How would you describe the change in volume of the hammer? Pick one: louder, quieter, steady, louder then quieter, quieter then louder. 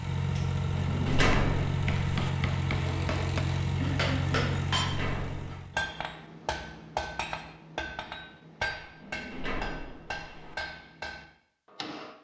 louder then quieter.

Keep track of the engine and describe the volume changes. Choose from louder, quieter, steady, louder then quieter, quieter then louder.
steady.